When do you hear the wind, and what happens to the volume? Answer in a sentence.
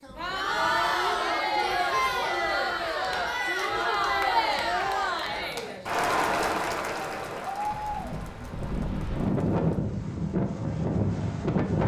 You can hear the wind from 0.0 to 11.8 s, getting louder.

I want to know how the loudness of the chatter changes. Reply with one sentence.
The loudness of the chatter goes down.